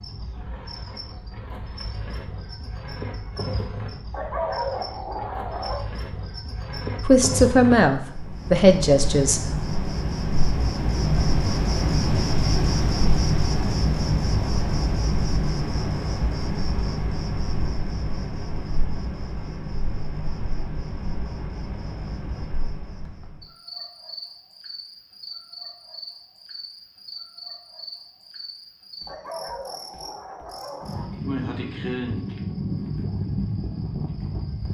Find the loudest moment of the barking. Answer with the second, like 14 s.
5 s.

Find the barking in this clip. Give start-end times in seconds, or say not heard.
4.1-5.8, 29.1-31.1.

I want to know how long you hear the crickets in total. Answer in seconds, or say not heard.
35 s.